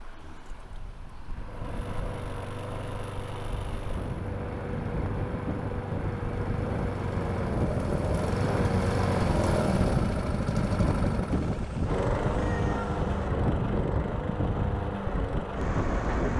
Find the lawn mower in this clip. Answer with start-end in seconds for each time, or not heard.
1.3-16.3.